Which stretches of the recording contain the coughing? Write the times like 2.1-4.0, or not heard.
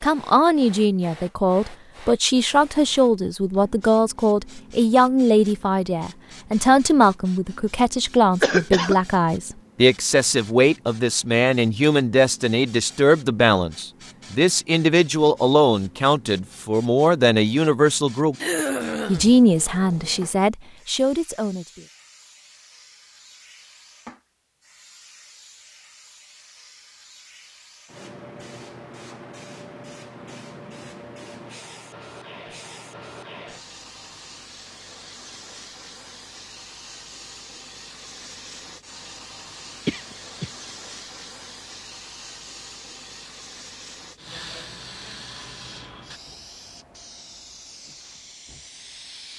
8.4-8.9, 18.4-19.3, 39.9-40.5.